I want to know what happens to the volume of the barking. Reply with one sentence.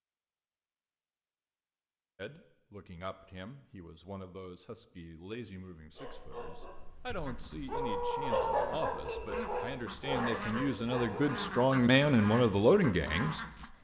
The loudness of the barking goes up, then down.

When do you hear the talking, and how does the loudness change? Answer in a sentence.
The talking can be heard from 2.1 to 13.7 s, getting louder.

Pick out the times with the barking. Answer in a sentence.
You can hear the barking from 5.9 to 11.6 s.